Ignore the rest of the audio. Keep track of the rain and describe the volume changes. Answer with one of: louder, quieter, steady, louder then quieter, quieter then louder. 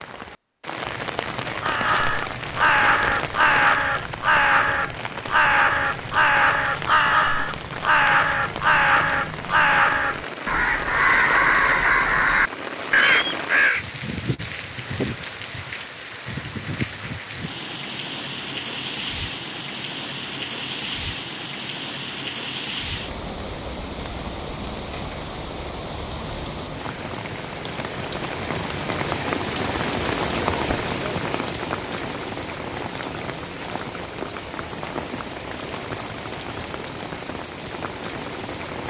steady.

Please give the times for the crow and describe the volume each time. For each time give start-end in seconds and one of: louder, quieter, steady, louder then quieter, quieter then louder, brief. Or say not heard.
1.6-13.8 steady.